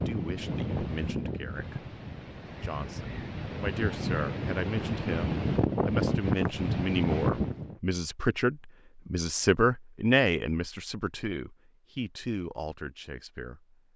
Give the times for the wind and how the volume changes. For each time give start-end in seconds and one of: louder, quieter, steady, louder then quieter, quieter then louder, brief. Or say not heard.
0.0-7.8 quieter then louder.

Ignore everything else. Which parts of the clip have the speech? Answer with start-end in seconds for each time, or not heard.
0.1-1.9, 2.6-13.8.